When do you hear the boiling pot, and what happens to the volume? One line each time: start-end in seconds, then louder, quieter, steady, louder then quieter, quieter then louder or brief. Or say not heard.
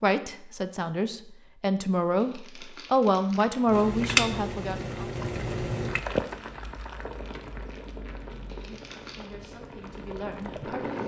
3.6-11.0 quieter.